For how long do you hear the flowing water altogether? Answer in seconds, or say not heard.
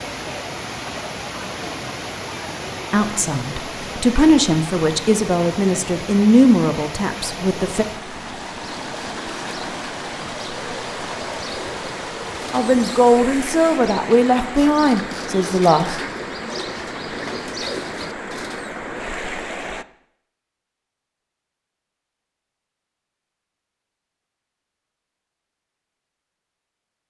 20 s.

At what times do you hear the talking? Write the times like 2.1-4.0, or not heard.
2.9-7.8, 12.5-16.0.